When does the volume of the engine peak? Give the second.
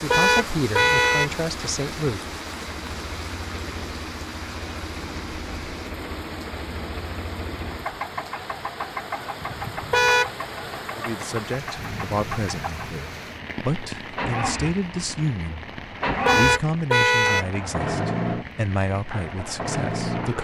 18 s.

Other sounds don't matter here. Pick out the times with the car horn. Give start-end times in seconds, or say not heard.
0.1-1.3, 9.9-10.3, 16.2-17.4.